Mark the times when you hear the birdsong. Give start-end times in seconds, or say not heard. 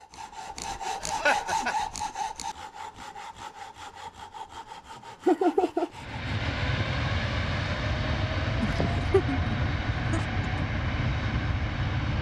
not heard.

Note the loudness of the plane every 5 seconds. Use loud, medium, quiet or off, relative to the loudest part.
off, loud, loud.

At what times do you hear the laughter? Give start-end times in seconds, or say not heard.
1.0-1.8, 5.2-5.9, 8.6-10.2.